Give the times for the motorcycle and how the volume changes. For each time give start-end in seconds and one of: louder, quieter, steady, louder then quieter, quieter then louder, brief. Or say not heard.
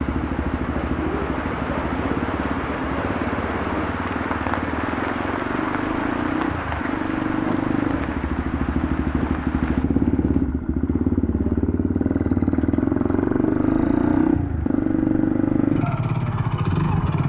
0.0-17.2 louder.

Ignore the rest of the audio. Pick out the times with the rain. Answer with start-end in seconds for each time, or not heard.
0.0-10.4.